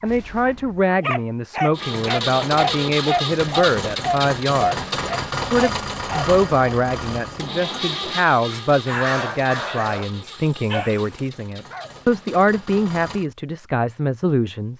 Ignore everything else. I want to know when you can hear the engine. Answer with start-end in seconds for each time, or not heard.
1.7-13.3.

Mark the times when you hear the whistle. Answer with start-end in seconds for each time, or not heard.
not heard.